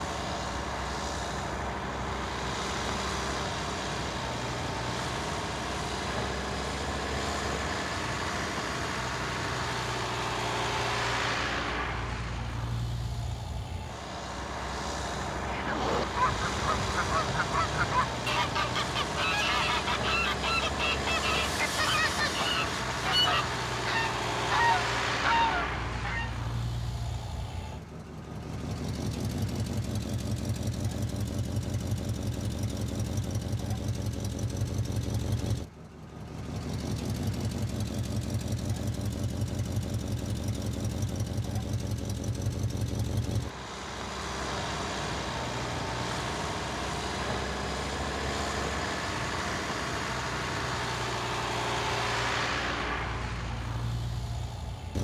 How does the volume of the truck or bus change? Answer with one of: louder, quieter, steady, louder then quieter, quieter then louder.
steady.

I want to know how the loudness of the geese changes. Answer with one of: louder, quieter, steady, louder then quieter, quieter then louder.
steady.